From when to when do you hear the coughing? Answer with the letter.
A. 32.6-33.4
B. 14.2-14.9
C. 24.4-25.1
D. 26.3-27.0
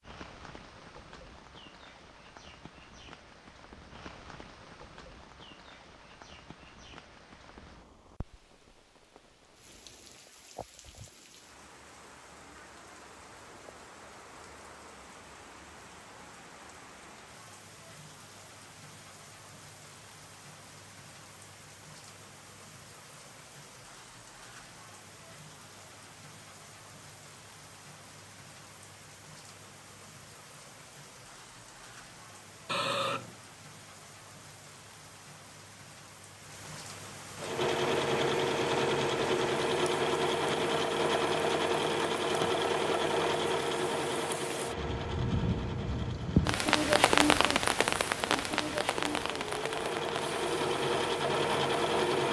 A.